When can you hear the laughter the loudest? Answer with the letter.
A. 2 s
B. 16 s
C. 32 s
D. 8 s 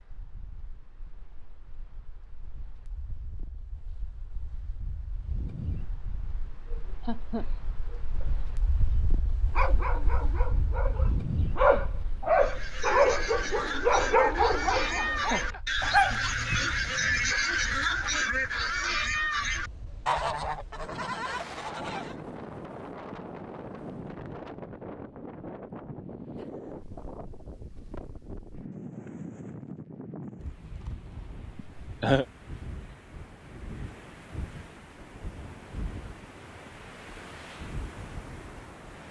C.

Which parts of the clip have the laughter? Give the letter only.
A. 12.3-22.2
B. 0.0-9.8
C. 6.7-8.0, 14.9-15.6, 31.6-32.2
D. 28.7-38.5
C.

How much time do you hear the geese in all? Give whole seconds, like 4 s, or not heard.
10 s.